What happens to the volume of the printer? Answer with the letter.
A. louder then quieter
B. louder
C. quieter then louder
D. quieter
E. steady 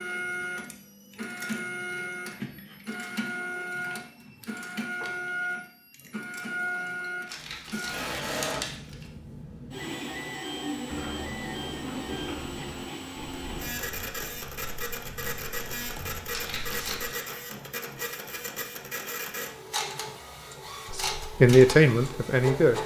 E.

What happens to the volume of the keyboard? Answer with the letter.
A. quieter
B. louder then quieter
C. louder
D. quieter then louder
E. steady
A.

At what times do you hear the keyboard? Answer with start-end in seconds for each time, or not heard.
10.8-17.1.